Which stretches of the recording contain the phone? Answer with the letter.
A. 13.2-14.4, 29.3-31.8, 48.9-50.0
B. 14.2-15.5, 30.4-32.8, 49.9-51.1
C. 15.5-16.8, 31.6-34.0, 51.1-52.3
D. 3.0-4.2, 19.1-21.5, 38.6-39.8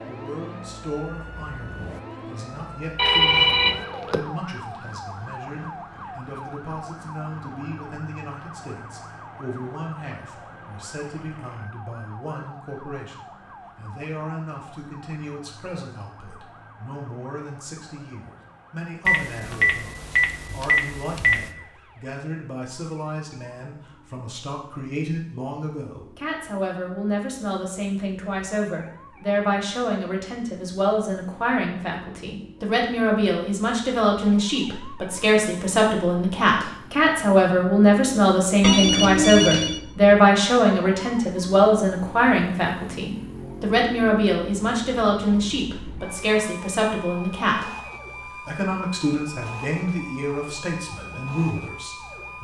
D.